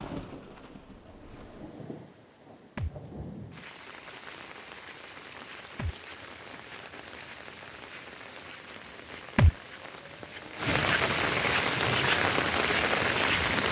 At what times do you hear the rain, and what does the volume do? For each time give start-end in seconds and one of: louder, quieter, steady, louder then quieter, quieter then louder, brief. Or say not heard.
0.0-13.6 louder.